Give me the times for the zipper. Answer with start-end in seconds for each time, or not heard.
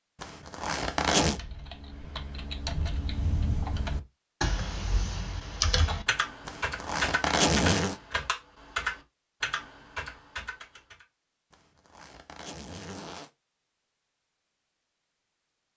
0.2-1.4, 6.5-8.0, 11.5-13.3.